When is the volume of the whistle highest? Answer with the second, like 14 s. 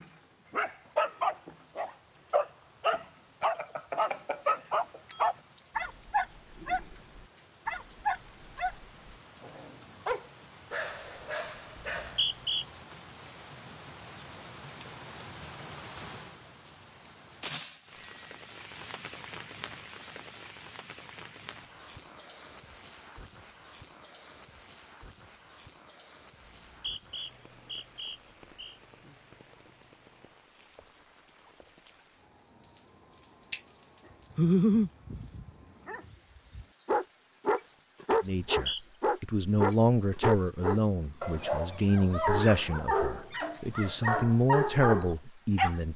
12 s.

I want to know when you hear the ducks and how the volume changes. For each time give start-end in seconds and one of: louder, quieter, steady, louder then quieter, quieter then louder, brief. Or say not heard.
not heard.